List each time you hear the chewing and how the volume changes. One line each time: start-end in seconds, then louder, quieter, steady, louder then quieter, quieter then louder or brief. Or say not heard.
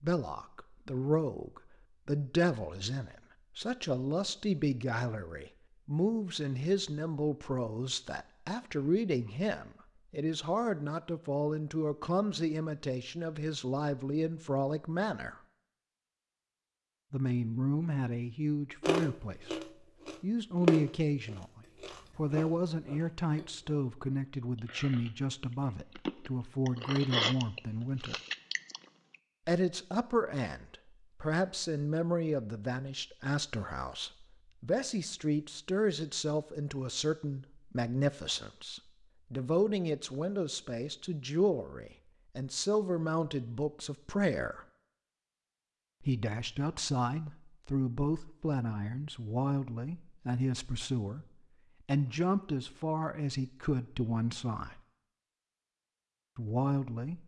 18.8-29.1 quieter then louder.